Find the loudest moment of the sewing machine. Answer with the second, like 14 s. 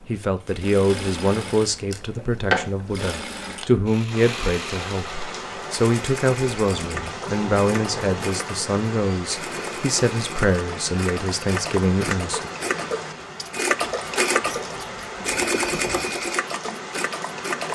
14 s.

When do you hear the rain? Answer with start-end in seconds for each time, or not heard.
4.1-17.7.